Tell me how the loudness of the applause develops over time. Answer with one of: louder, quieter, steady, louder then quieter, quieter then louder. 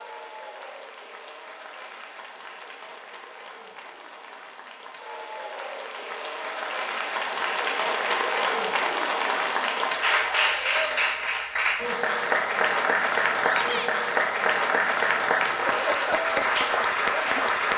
louder.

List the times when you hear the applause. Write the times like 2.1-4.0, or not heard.
0.0-17.7.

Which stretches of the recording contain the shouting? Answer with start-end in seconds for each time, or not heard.
13.3-13.9.